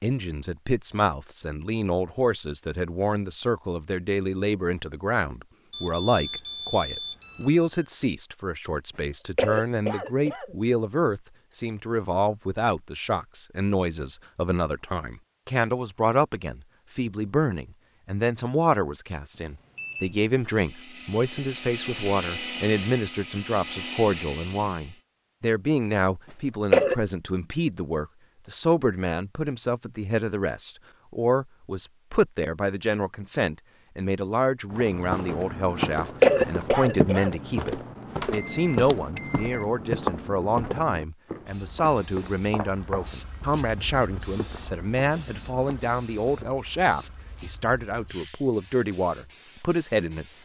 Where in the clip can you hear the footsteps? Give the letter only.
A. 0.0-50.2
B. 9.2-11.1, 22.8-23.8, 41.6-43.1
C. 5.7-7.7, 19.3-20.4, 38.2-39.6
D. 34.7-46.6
D.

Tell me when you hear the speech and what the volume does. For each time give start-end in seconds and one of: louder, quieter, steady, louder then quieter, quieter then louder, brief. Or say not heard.
0.0-50.2 steady.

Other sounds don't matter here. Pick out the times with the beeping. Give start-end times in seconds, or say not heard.
5.7-7.7, 19.3-20.4, 38.2-39.6.